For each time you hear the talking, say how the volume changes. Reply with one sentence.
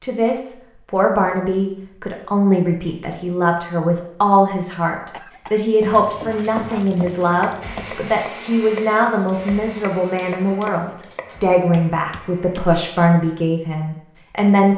You can hear the talking from 0.0 to 14.7 s, at a steady volume.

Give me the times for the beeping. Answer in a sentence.
You can't hear the beeping here.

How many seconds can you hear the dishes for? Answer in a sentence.
The dishes can't be heard in this clip.